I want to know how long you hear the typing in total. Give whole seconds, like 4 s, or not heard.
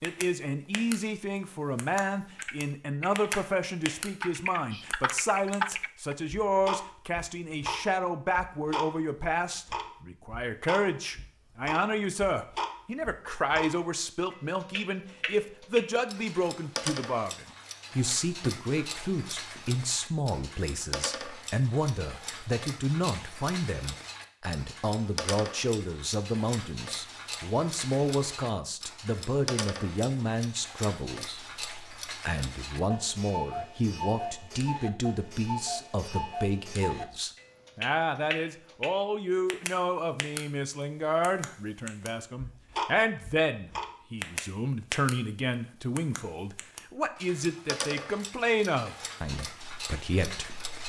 4 s.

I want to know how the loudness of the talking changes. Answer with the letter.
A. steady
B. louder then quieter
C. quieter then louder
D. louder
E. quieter
A.